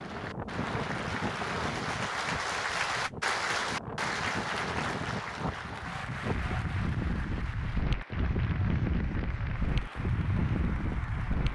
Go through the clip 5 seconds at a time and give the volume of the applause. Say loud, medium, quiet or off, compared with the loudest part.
loud, medium, medium.